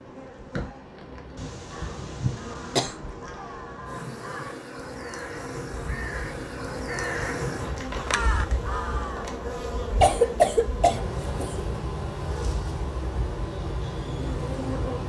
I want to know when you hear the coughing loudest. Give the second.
10 s.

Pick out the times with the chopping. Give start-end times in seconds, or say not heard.
not heard.